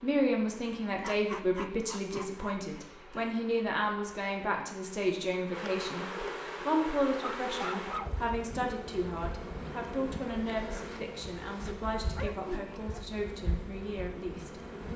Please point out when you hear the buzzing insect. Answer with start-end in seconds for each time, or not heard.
0.0-14.9.